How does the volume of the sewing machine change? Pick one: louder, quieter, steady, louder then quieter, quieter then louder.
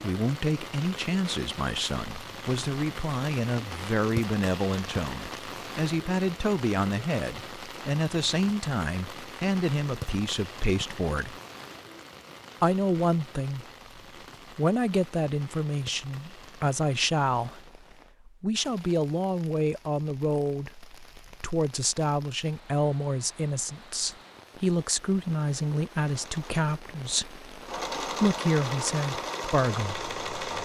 louder.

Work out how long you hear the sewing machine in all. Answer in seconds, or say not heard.
5 s.